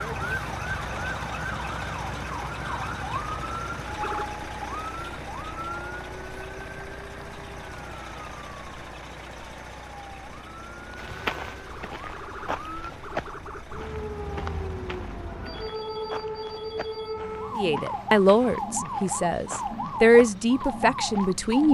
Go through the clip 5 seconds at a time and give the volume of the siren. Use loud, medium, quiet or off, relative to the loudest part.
loud, medium, medium, loud, loud.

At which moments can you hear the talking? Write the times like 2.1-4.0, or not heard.
17.6-21.6.